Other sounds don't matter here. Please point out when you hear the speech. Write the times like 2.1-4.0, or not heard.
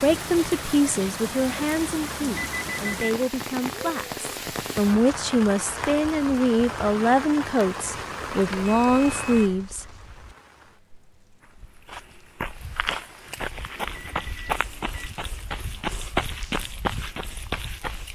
0.0-9.8.